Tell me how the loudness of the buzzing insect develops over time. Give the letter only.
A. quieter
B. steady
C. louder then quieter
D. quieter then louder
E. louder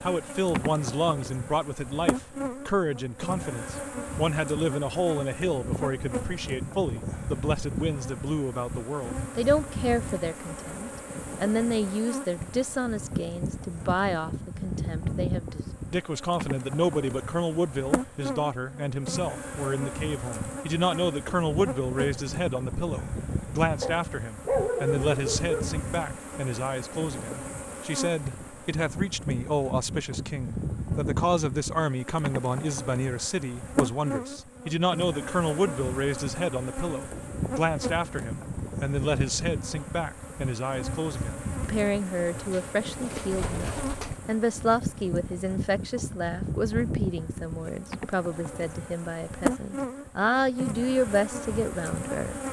B.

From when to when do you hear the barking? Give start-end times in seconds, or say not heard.
23.8-25.8.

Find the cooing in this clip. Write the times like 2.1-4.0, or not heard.
42.3-44.2.